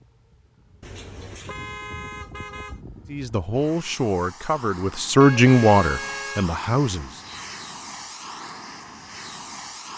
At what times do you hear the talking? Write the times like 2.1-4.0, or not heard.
3.0-7.2.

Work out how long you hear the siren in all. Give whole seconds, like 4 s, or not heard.
not heard.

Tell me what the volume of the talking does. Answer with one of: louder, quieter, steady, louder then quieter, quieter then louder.
louder then quieter.